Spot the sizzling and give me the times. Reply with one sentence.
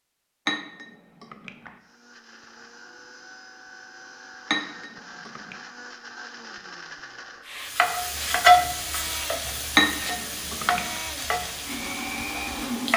The sizzling can be heard from 7.5 to 12.9 s.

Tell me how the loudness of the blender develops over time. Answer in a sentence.
The volume of the blender goes up.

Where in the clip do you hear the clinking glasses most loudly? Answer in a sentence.
The volume of the clinking glasses peaks at 10 seconds.